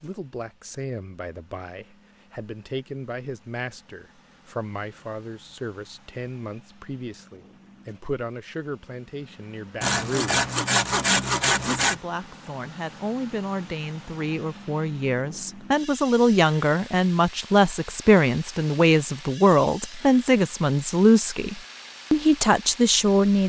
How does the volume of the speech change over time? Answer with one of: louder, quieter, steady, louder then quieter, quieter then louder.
louder.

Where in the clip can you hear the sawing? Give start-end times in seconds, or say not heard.
9.8-12.0.